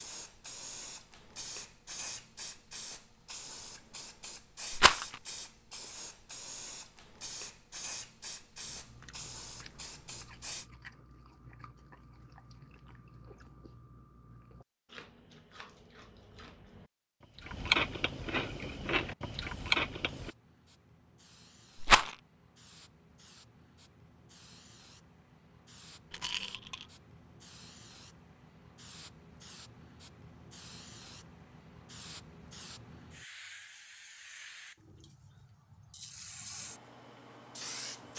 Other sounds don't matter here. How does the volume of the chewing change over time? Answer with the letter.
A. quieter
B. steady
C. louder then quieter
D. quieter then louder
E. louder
E.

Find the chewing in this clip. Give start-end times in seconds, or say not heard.
8.6-20.3.